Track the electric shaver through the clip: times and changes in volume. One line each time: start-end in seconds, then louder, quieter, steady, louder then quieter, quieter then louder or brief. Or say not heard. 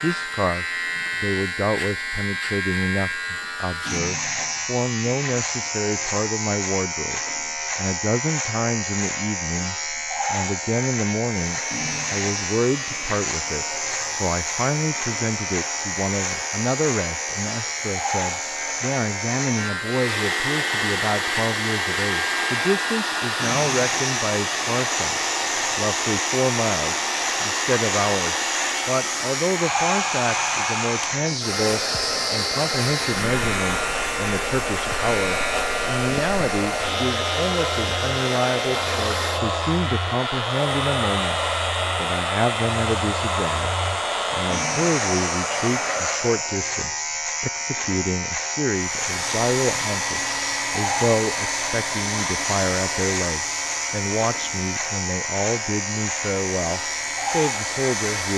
0.0-58.3 steady.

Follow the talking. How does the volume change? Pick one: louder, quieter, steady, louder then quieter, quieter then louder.
steady.